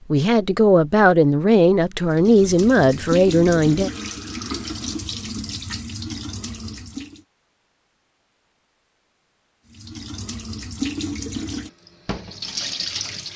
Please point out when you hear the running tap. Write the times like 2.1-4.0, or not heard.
2.0-7.2, 9.7-13.3.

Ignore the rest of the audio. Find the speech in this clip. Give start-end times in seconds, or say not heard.
0.1-3.9.